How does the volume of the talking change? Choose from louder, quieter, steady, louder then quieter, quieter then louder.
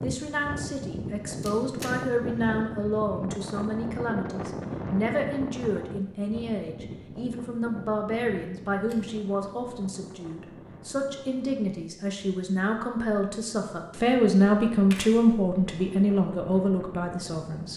louder.